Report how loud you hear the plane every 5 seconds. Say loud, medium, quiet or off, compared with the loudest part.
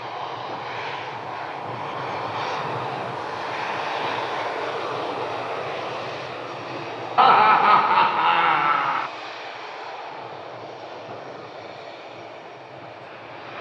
loud, loud, medium.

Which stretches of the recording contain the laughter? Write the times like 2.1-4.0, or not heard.
7.2-9.1.